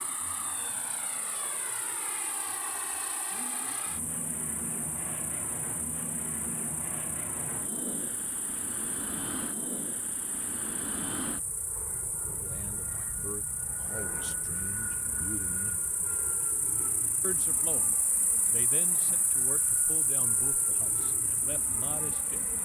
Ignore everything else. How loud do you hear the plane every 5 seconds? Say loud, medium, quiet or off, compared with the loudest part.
loud, loud, loud, medium, medium.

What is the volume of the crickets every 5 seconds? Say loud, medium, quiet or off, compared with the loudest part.
medium, medium, medium, loud, loud.